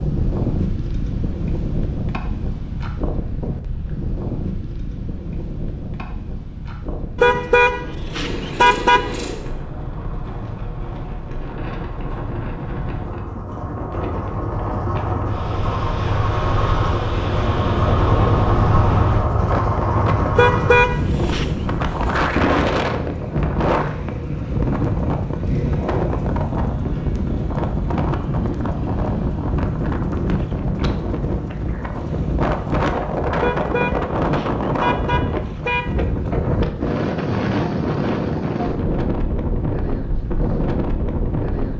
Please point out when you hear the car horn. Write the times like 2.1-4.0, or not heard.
7.2-9.2, 20.4-21.6, 33.4-36.0.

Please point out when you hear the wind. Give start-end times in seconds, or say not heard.
0.0-41.7.